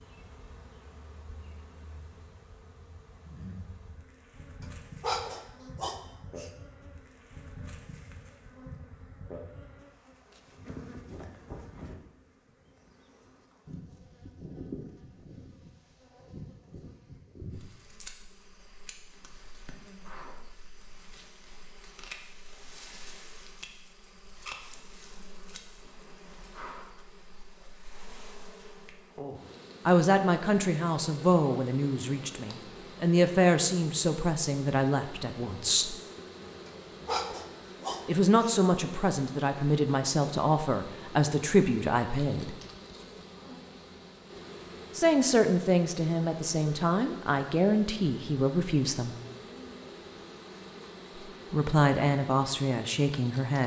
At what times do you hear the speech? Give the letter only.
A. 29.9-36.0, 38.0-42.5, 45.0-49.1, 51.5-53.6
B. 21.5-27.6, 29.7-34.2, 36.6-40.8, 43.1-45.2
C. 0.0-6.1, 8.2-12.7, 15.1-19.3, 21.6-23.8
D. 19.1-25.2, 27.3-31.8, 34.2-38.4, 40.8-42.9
A.